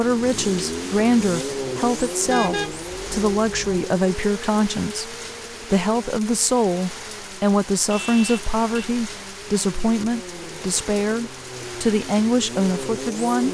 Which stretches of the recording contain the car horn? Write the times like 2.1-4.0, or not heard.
2.2-3.8, 7.9-8.8.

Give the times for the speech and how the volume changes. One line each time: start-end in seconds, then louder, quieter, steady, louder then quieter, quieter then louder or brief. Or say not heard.
0.0-13.4 steady.